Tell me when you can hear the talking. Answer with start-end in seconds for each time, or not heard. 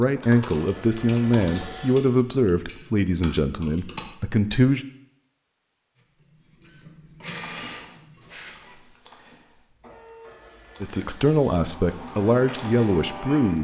0.0-4.8, 10.8-13.6.